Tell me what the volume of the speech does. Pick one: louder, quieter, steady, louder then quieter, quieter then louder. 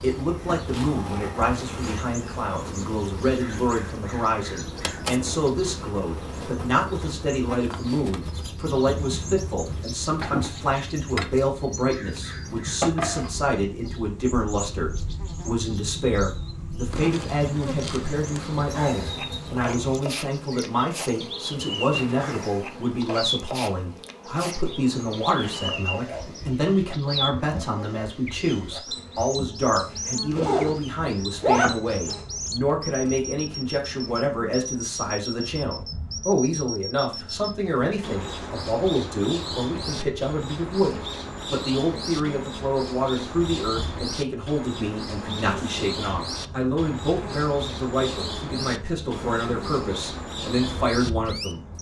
steady.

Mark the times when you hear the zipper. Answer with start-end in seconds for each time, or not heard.
30.3-30.8, 31.4-32.1.